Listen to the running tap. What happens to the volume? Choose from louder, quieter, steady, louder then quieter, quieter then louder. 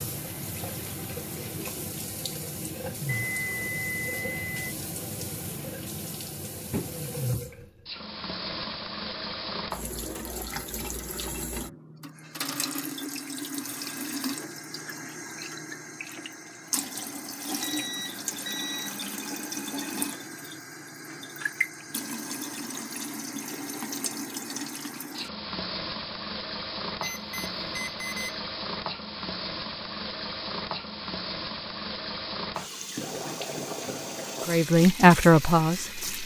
steady.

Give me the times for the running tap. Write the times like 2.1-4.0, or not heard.
0.0-36.2.